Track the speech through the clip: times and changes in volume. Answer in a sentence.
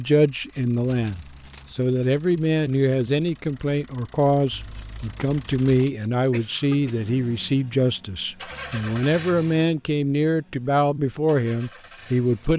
You can hear the speech from 0.0 to 12.5 s, at a steady volume.